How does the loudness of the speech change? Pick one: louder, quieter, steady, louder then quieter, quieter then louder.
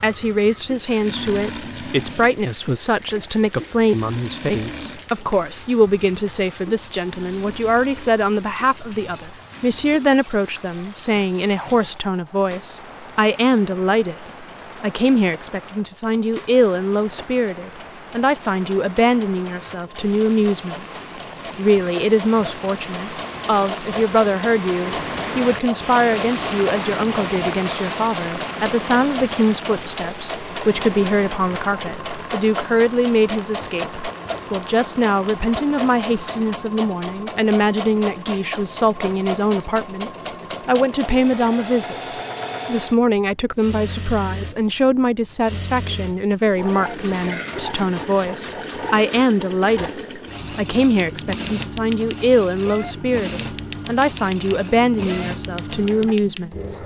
steady.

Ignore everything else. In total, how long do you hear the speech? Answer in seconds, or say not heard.
57 s.